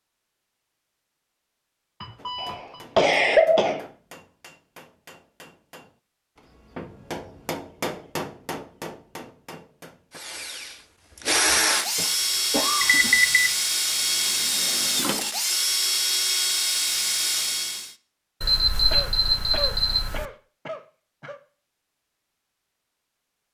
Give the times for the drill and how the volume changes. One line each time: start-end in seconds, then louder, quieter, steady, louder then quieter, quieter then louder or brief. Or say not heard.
10.2-17.9 steady.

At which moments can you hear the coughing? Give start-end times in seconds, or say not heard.
2.4-3.9, 11.9-13.2, 18.9-21.4.